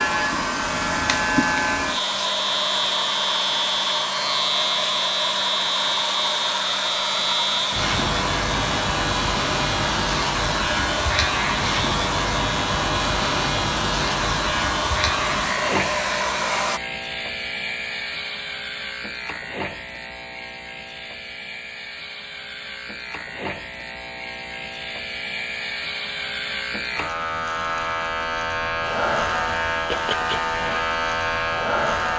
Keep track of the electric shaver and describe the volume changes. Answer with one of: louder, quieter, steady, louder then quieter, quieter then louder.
quieter then louder.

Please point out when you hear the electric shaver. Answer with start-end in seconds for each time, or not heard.
0.0-32.1.